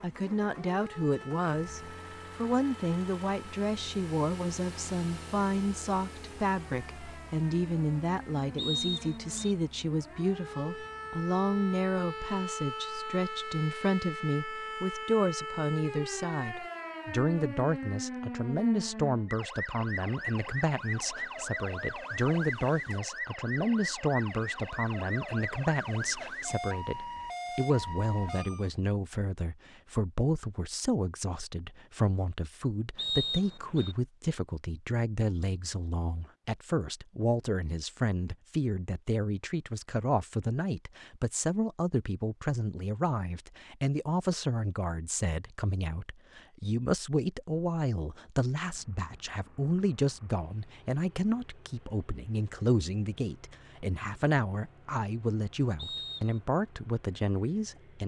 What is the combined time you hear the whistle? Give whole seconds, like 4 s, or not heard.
3 s.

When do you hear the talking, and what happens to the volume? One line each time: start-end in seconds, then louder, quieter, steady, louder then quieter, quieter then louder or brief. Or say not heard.
0.0-58.0 steady.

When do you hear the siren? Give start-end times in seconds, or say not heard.
0.0-28.7.